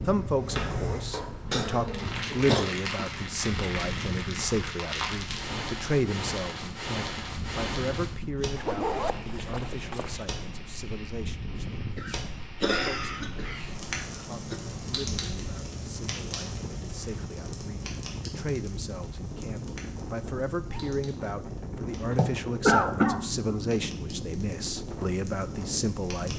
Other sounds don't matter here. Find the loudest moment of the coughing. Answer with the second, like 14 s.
23 s.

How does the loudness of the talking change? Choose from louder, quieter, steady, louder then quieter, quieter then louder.
quieter then louder.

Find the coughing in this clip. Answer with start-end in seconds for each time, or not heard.
1.5-2.6, 11.9-14.6, 22.1-23.4.